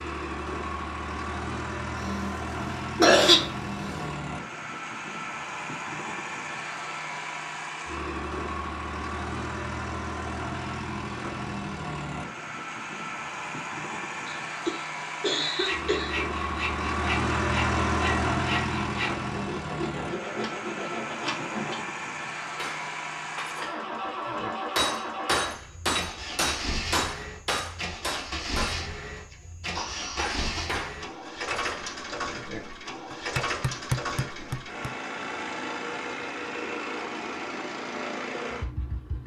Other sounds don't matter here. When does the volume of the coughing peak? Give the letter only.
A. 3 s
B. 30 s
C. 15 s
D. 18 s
A.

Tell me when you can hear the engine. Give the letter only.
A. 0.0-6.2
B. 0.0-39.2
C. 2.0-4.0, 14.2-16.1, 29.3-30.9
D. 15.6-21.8
B.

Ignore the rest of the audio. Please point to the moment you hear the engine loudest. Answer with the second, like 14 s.
18 s.